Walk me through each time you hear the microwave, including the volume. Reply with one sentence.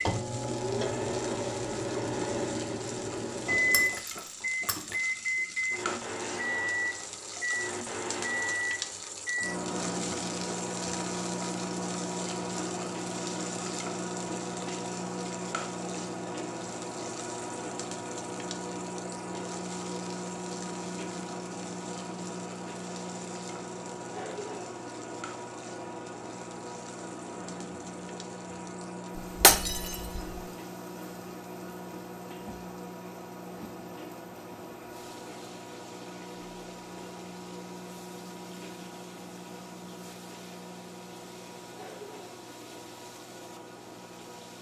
The microwave can be heard from 0.0 to 44.5 s, getting quieter.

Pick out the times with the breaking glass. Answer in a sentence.
The breaking glass can be heard from 3.7 to 5.0 s and from 29.4 to 30.4 s.